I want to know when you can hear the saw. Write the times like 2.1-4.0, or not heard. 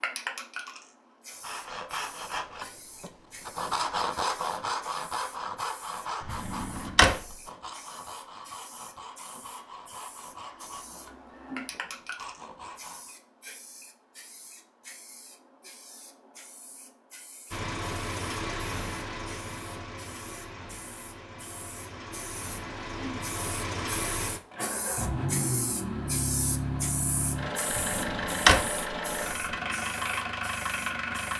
1.2-13.2.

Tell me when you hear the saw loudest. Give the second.
4 s.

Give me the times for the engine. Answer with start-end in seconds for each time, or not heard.
17.5-31.3.